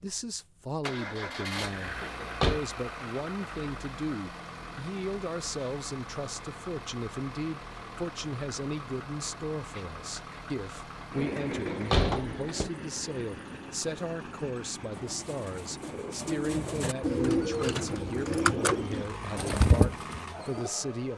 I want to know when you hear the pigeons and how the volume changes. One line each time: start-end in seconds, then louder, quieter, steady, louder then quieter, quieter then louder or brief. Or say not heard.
14.9-20.7 louder.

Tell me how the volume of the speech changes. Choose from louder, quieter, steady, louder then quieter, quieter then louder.
steady.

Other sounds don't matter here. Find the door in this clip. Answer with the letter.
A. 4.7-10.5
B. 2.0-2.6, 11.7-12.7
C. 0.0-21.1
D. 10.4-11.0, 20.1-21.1
B.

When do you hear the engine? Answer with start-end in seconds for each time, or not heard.
0.0-21.1.